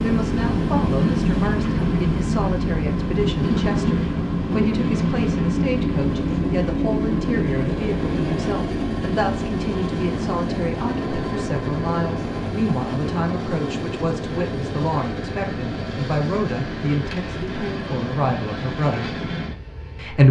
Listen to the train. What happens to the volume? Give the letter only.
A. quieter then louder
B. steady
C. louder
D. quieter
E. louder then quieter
D.